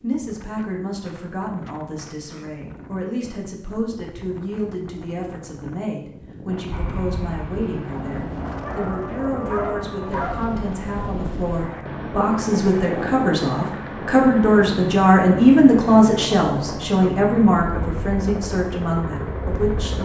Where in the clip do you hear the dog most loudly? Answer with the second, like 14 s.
10 s.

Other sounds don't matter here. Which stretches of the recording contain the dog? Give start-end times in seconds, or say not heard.
8.6-10.4.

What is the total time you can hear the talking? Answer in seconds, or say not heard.
20 s.